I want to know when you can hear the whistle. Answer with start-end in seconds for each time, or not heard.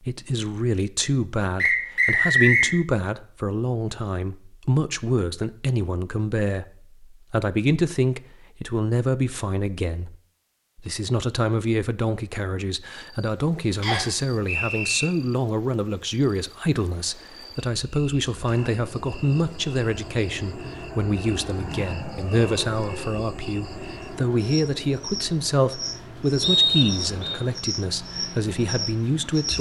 1.6-2.7, 13.8-15.1, 26.4-27.4.